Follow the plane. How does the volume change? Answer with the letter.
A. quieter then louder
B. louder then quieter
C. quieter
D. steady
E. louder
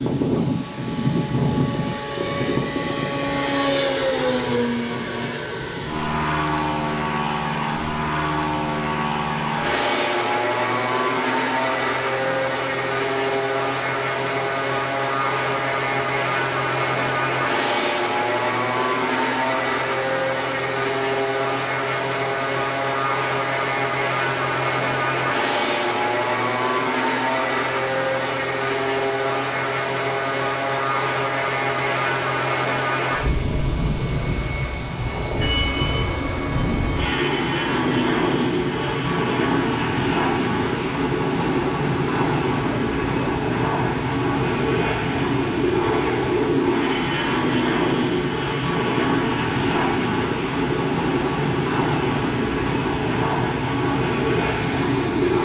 D.